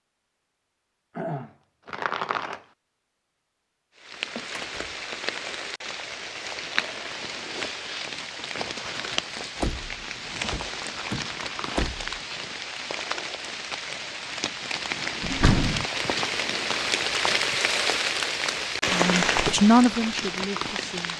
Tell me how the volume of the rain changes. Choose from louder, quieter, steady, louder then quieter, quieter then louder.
louder.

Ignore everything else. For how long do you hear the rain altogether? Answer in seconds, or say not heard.
17 s.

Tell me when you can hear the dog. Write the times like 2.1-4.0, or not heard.
not heard.